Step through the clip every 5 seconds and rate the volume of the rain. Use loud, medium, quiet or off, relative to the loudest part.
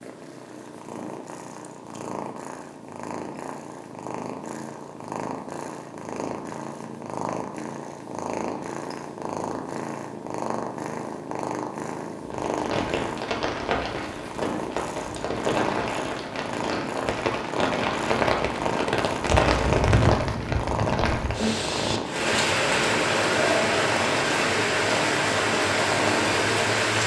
off, off, medium, loud, loud, loud.